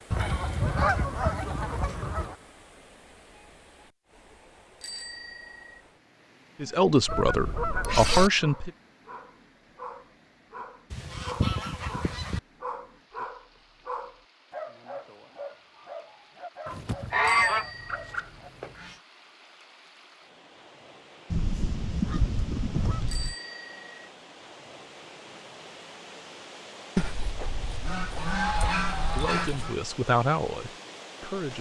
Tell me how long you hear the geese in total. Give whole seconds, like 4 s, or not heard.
12 s.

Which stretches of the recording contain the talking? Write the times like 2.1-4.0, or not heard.
6.6-8.7, 29.1-31.5.